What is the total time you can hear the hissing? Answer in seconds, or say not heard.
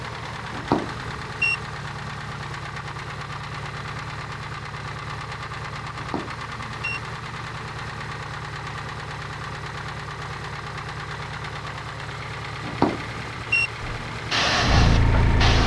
2 s.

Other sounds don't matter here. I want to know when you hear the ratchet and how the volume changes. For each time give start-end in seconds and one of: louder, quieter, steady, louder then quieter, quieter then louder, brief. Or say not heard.
not heard.